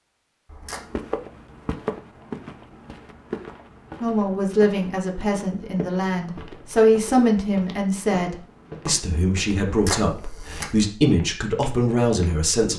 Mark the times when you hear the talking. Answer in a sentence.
You can hear the talking from 4.0 to 12.7 s.